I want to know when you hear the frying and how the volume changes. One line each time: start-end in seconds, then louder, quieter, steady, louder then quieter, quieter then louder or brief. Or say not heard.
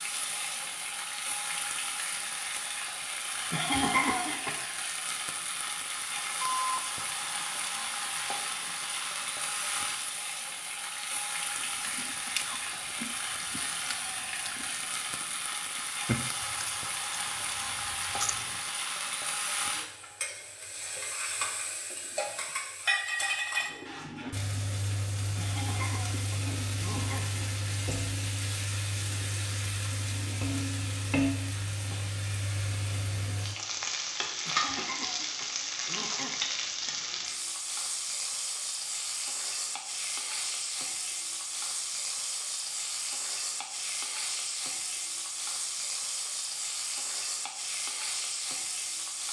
0.0-49.2 steady.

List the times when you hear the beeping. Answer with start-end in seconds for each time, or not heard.
6.4-7.5.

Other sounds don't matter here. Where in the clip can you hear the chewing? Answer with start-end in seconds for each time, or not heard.
11.6-18.6.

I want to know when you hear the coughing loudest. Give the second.
4 s.